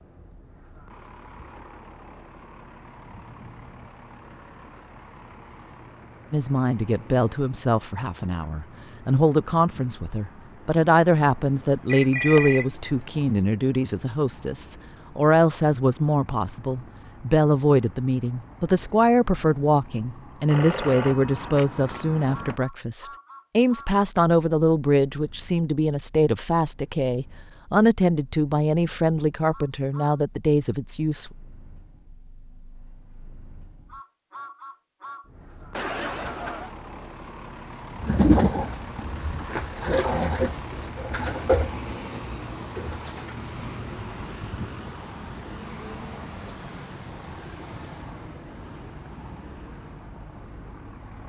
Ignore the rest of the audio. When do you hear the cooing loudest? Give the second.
38 s.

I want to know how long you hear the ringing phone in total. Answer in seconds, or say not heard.
5 s.